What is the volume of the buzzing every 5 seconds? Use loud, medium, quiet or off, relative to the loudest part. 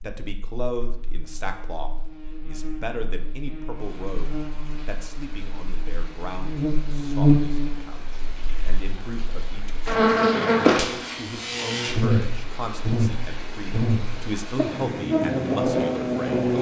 quiet, loud, loud, loud.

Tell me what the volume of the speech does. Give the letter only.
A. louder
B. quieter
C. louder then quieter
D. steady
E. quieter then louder
E.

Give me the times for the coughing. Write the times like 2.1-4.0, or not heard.
not heard.